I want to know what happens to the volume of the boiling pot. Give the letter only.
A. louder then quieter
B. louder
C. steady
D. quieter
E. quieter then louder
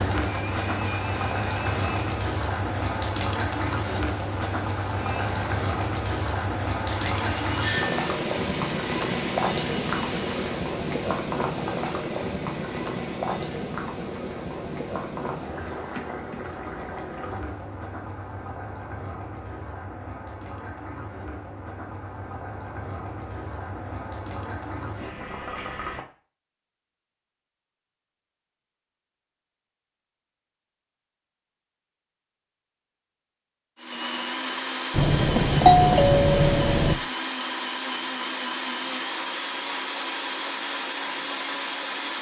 D.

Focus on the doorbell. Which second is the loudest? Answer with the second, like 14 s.
36 s.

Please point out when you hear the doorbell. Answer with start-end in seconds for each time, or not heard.
7.6-8.1, 34.9-37.0.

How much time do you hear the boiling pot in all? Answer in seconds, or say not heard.
26 s.